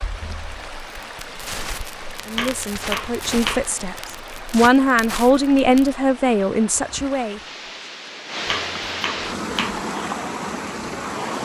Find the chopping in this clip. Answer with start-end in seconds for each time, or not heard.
2.4-3.7, 8.4-9.8.